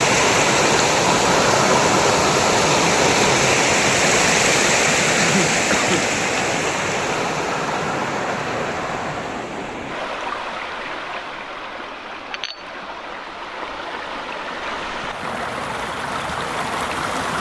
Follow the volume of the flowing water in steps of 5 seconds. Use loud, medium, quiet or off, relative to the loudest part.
loud, medium, quiet, medium.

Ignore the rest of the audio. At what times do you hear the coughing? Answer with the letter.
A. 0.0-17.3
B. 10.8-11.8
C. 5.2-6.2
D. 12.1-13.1
C.